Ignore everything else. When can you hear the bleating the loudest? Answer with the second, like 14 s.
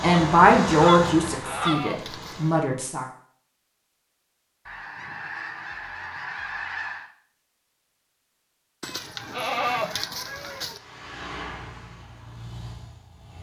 10 s.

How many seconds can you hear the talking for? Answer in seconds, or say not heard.
3 s.